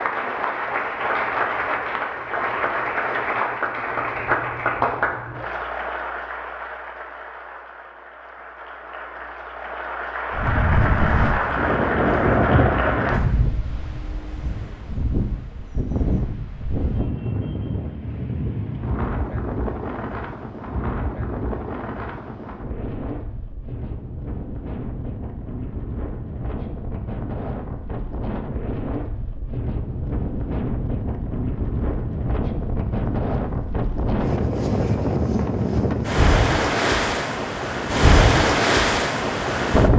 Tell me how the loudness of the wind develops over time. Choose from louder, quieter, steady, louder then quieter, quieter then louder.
quieter then louder.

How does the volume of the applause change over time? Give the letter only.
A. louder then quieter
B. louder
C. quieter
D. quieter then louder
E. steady
D.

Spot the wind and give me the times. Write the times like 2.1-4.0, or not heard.
10.3-39.9.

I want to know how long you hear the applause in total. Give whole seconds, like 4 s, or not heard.
13 s.